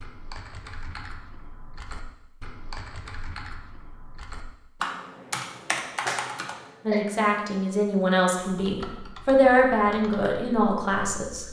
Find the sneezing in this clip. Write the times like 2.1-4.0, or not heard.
6.6-7.0.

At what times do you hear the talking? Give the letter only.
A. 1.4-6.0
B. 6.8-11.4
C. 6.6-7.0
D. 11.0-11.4
B.